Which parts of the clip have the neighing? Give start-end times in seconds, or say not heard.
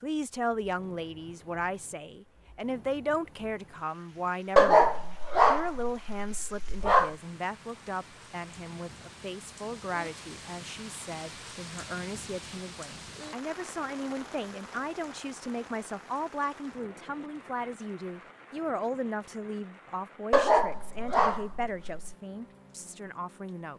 not heard.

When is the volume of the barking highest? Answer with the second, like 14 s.
5 s.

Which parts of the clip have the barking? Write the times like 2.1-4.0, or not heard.
4.5-7.2, 20.3-22.1.